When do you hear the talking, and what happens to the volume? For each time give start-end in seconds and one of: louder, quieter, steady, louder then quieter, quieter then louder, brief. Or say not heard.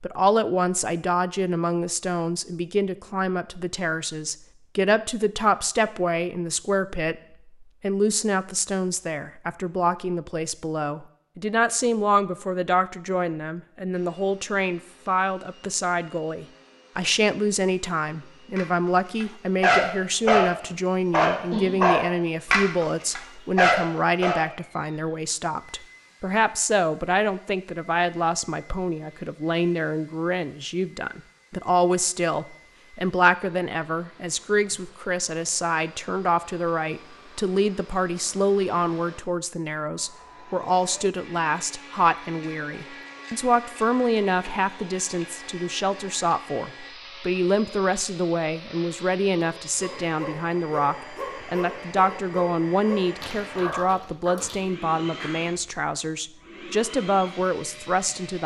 0.0-58.4 steady.